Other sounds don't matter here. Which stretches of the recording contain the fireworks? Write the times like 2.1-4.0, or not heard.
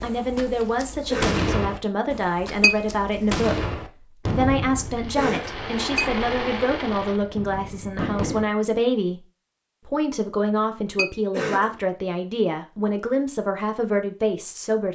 0.0-8.5.